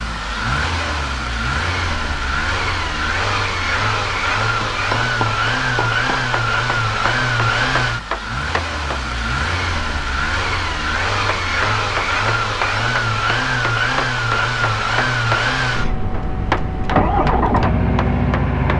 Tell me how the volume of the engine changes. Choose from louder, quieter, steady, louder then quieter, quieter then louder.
steady.